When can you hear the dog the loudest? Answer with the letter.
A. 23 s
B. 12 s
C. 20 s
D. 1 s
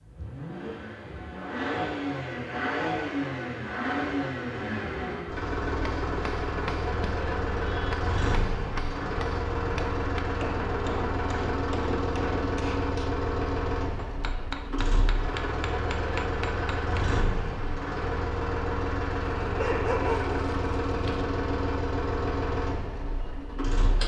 C.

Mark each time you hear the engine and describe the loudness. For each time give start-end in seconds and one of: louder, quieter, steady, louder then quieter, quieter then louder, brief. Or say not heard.
0.0-24.0 steady.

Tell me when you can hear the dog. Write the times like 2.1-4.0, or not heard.
19.4-21.2.